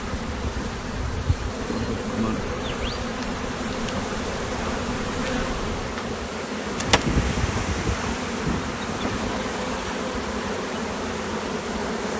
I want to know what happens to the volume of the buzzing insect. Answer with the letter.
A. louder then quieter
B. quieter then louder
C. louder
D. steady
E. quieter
D.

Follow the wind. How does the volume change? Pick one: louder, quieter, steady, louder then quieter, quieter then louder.
louder.